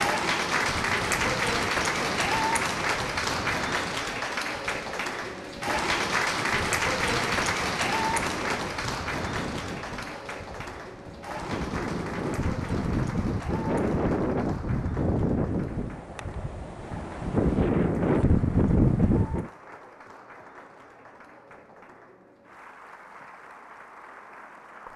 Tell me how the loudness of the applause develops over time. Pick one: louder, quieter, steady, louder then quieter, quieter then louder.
quieter.